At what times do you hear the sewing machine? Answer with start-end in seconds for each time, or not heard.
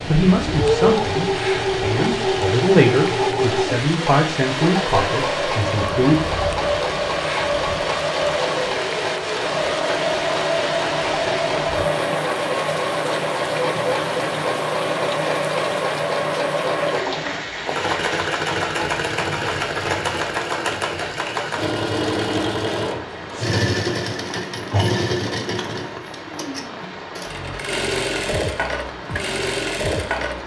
0.0-30.4.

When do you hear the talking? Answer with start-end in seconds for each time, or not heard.
0.0-6.2.